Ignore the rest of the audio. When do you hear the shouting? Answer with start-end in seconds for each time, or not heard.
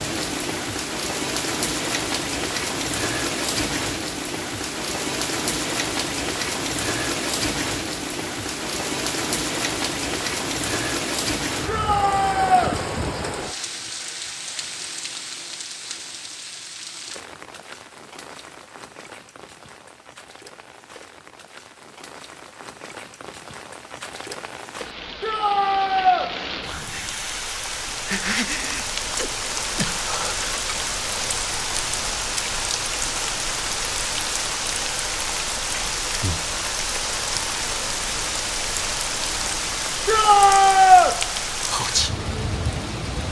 11.7-12.8, 25.2-26.3, 40.0-41.1.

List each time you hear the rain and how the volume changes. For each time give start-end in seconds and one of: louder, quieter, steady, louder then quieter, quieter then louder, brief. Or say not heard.
0.0-43.2 quieter then louder.